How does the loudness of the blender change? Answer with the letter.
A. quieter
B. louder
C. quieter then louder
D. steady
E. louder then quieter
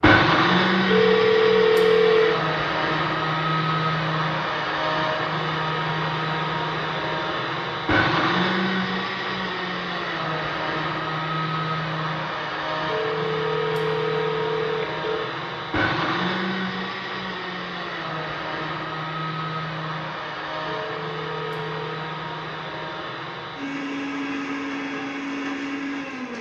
A.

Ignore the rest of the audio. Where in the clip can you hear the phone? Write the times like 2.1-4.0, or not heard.
0.8-2.4, 12.8-15.3, 20.8-21.9.